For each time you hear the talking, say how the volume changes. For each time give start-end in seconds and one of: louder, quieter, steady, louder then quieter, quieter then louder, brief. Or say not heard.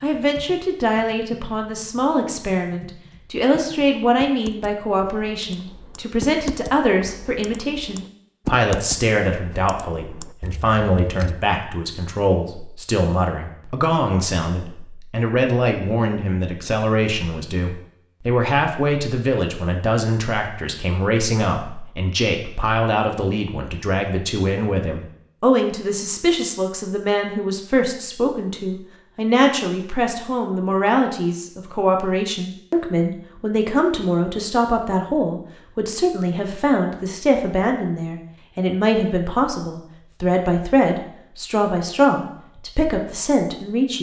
0.0-43.9 steady.